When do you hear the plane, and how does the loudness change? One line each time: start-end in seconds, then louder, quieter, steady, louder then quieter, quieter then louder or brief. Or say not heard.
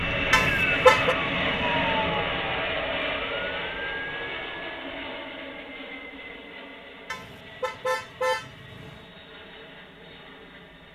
0.0-10.9 quieter.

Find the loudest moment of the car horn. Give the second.
1 s.